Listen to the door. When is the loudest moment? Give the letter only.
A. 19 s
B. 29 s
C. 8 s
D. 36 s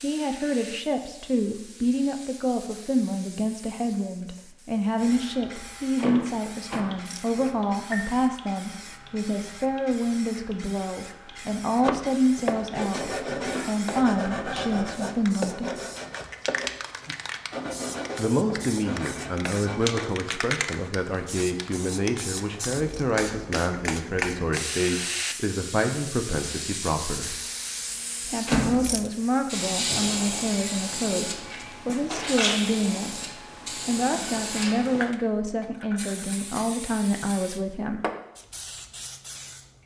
B.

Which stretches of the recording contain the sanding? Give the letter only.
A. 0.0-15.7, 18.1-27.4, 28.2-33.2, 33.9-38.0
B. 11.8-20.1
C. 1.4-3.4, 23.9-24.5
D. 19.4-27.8
B.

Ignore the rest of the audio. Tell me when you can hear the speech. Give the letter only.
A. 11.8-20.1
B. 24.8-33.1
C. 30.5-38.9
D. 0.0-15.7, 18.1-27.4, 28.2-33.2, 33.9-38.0
D.